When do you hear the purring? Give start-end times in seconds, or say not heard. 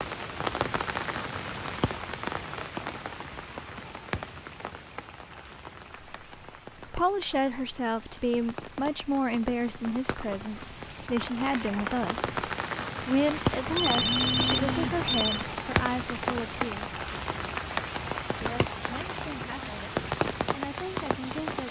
not heard.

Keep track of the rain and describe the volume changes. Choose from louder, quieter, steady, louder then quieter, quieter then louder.
quieter then louder.